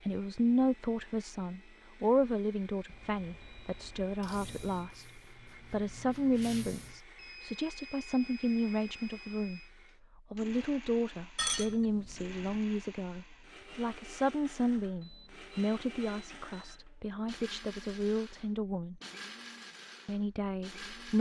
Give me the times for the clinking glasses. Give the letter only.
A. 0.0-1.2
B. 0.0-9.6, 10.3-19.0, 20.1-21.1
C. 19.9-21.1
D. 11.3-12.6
D.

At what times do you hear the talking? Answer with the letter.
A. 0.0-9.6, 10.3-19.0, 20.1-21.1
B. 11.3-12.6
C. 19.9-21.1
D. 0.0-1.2
A.